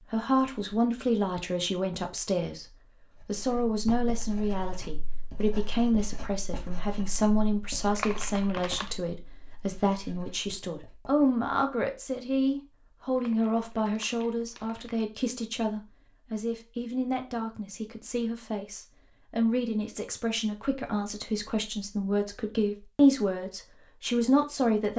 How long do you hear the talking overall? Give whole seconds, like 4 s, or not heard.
25 s.